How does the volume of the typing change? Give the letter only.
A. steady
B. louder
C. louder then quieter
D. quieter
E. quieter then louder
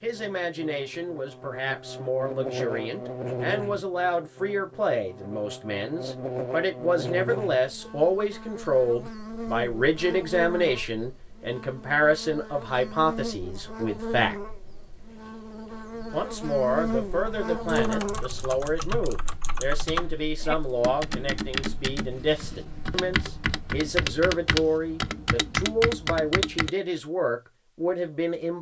B.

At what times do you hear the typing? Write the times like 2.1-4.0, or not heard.
17.6-26.7.